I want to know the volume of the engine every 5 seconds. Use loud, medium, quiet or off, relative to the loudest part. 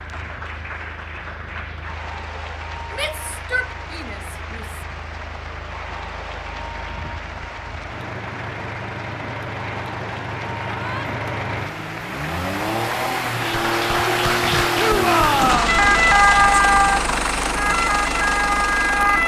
quiet, medium, loud, loud.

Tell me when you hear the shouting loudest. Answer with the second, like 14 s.
15 s.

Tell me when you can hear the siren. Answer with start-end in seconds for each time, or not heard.
15.7-19.2.